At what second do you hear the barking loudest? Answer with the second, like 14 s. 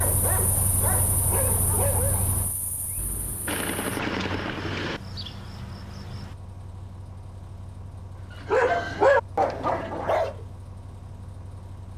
9 s.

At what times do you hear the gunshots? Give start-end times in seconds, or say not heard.
3.0-5.0.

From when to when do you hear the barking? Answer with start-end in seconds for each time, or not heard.
0.0-2.3, 8.4-10.3.